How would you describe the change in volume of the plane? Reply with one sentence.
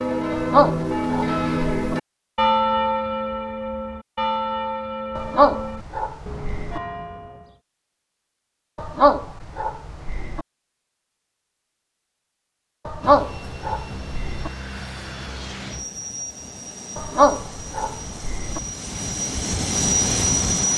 The volume of the plane goes up.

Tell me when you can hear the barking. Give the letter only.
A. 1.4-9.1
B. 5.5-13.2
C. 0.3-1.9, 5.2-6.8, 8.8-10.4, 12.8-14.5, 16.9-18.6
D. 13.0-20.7
C.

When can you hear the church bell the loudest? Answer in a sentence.
The volume of the church bell peaks at 3 seconds.